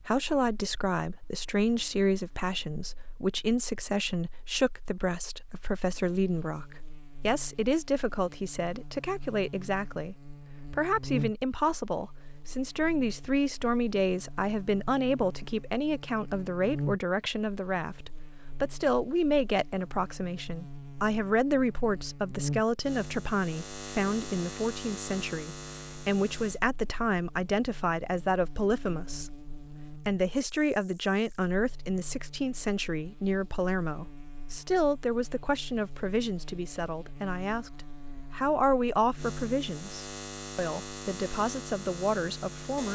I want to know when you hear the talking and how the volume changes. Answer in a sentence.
The talking can be heard from 0.1 to 42.9 s, at a steady volume.